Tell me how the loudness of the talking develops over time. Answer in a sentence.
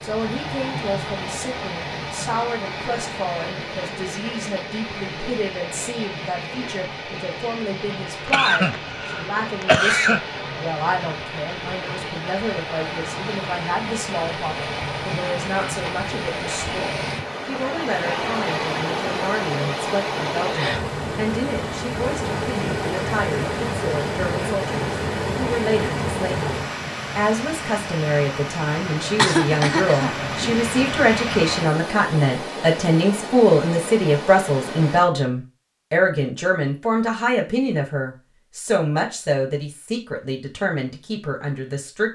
The loudness of the talking goes up.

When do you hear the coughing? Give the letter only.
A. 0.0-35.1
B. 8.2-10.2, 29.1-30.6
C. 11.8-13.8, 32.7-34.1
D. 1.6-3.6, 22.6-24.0
B.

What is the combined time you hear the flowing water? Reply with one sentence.
The flowing water can be heard for 35 seconds in total.